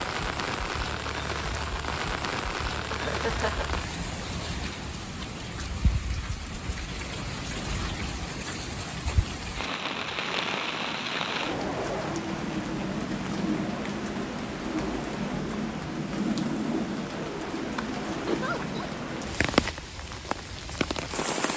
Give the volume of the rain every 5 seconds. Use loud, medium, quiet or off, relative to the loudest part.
loud, medium, loud, loud, loud.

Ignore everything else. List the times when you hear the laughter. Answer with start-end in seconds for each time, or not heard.
2.9-3.7, 11.2-12.2, 18.2-18.9.